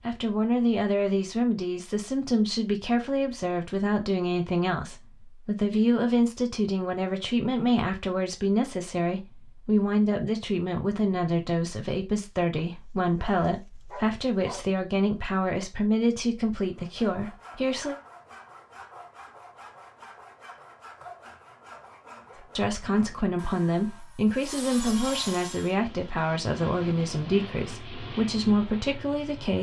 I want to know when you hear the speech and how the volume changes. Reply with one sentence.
You can hear the speech from 0.0 to 17.9 s, at a steady volume; and from 22.4 to 29.5 s, at a steady volume.